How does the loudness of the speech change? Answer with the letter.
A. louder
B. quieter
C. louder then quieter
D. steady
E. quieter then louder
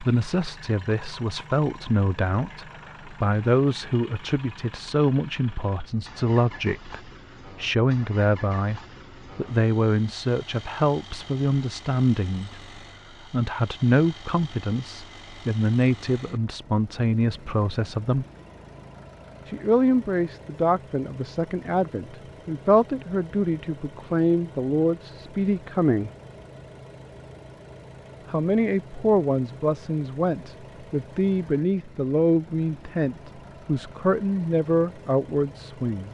D.